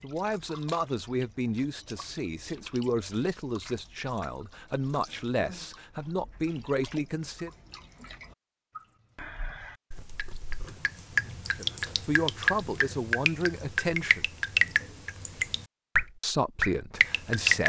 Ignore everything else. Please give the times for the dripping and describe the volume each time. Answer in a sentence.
You can hear the dripping from 0.0 to 17.6 s, getting louder.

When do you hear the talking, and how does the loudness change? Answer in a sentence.
You can hear the talking from 0.0 to 7.5 s, at a steady volume; briefly from 11.5 to 14.3 s; and briefly from 16.2 to 17.6 s.